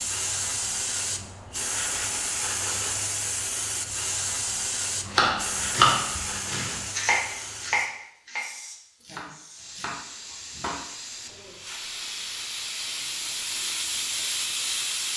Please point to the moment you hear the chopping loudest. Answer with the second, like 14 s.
6 s.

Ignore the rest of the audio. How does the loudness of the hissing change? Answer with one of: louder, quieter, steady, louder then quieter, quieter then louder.
quieter then louder.